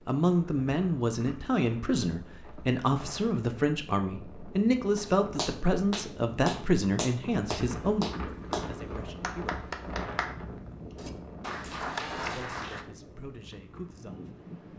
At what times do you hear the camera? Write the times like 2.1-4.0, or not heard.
11.8-12.5.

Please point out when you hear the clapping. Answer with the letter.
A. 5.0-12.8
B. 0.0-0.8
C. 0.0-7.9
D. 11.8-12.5
A.